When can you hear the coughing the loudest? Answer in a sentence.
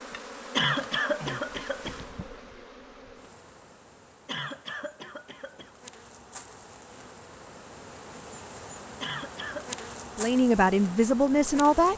The loudest moment of the coughing is at 1 second.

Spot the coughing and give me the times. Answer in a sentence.
You can hear the coughing from 0.5 to 2.0 s, from 4.2 to 5.7 s and from 9.0 to 9.8 s.